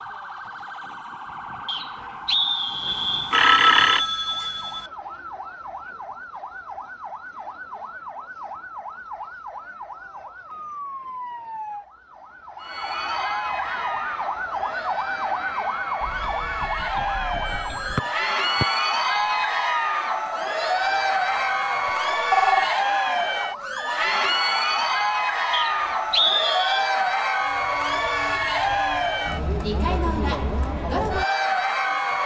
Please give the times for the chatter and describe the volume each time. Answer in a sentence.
You can hear the chatter from 12.6 to 32.2 s, getting louder.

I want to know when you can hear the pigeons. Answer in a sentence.
The pigeons can't be heard in this clip.